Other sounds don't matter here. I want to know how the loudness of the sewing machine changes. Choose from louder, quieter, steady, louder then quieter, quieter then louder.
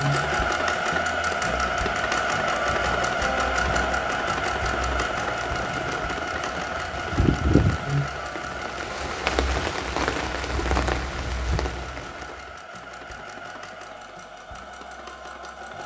quieter.